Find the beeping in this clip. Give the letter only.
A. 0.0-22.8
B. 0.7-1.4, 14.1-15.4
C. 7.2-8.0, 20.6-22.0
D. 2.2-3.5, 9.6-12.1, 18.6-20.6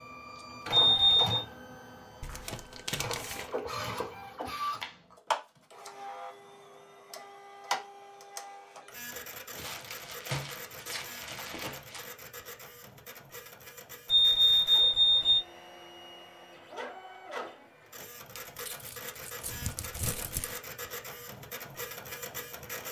B.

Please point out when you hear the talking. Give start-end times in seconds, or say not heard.
not heard.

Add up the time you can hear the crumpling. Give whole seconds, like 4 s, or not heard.
6 s.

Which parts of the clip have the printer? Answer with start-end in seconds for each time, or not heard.
0.0-22.8.